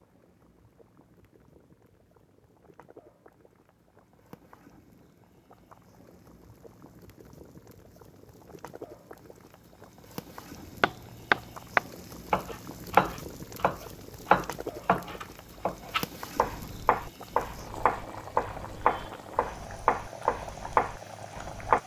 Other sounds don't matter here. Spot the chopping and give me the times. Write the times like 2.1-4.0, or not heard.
10.8-21.8.